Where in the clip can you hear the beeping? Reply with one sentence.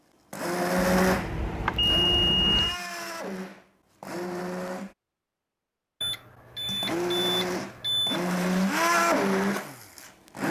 The beeping can be heard from 0.8 to 2.8 s and from 6.0 to 8.2 s.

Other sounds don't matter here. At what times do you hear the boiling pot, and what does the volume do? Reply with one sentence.
The boiling pot can't be heard in this clip.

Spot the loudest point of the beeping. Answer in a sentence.
The volume of the beeping peaks at 2 seconds.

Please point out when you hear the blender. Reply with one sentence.
The blender can be heard from 0.3 to 5.0 s and from 6.7 to 10.4 s.